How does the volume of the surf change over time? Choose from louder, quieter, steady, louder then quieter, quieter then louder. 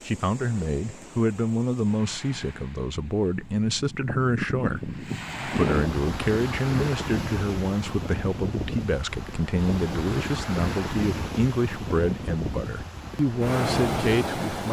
louder.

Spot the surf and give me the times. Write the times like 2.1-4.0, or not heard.
0.0-14.6.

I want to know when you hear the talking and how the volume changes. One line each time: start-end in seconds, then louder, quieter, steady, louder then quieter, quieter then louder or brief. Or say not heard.
0.1-14.6 steady.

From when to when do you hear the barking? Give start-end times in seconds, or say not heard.
not heard.